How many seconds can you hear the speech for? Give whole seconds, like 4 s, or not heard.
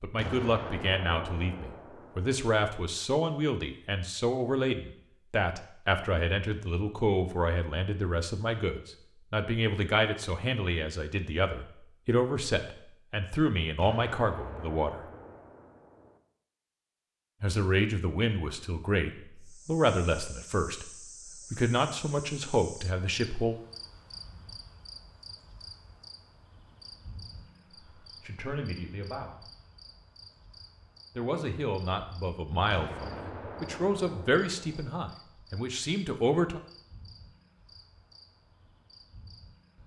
28 s.